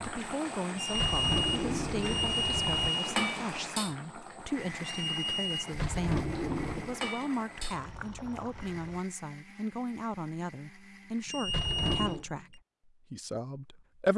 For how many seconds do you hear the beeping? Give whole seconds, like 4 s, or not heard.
5 s.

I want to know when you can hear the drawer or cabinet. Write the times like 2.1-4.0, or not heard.
0.9-2.9, 5.7-7.0, 11.4-12.2.